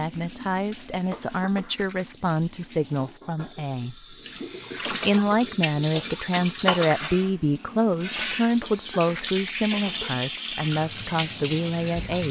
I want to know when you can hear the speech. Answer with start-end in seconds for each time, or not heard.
0.0-12.2.